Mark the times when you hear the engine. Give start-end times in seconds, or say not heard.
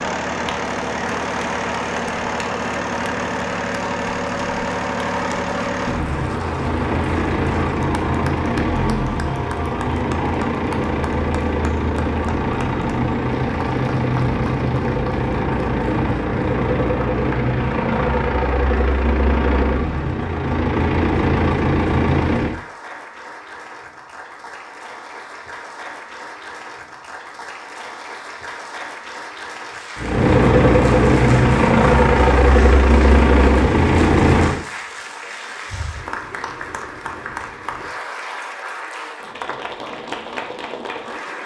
0.0-22.6, 29.9-34.6.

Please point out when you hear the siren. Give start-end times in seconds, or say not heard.
not heard.